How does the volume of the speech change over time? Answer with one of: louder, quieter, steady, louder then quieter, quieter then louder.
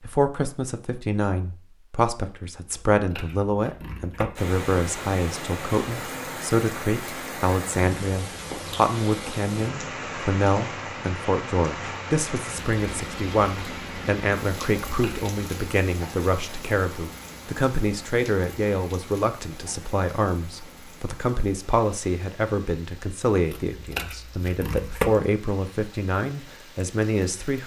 steady.